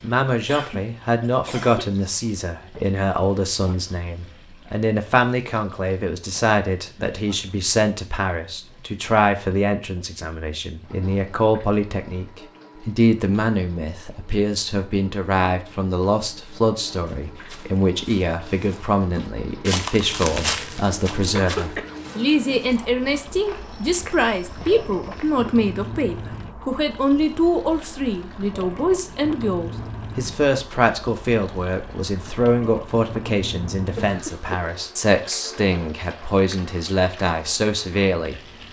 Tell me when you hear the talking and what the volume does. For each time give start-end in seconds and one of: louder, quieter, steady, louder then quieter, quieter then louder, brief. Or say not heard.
0.0-38.4 steady.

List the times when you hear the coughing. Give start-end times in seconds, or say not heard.
0.5-1.9, 21.4-22.4, 34.0-34.6.